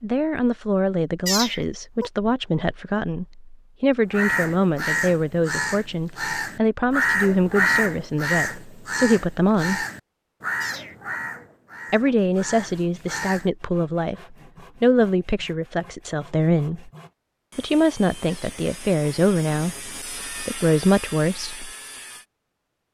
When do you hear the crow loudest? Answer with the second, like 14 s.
8 s.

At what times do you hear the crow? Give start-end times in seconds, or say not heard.
4.1-13.4.